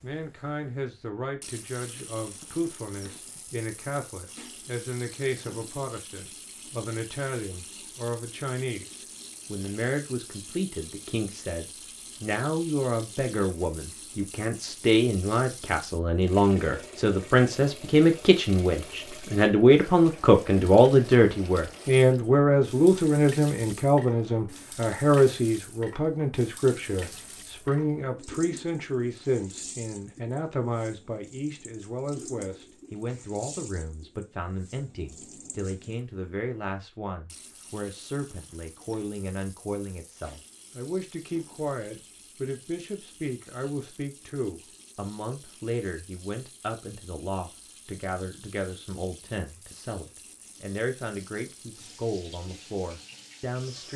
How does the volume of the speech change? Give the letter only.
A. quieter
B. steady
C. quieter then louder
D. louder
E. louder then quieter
E.